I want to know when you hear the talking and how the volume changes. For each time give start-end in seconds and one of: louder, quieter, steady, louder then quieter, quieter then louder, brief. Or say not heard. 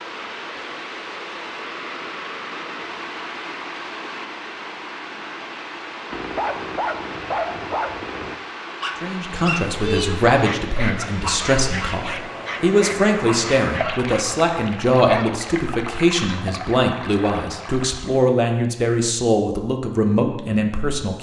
9.0-21.1 steady.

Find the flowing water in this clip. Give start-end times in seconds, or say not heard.
0.0-18.2.